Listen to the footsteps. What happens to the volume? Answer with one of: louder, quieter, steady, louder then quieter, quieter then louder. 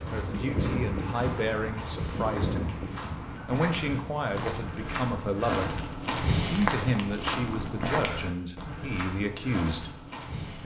louder then quieter.